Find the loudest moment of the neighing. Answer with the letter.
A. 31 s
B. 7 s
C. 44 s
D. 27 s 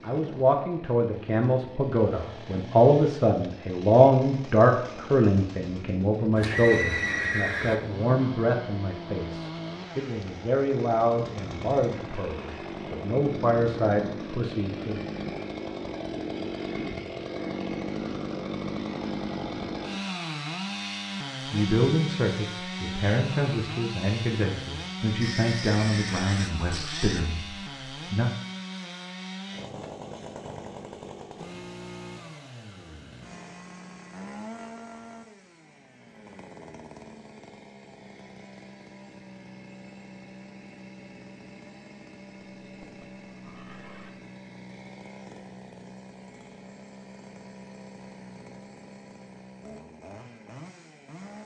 B.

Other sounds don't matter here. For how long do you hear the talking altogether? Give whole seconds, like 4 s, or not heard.
22 s.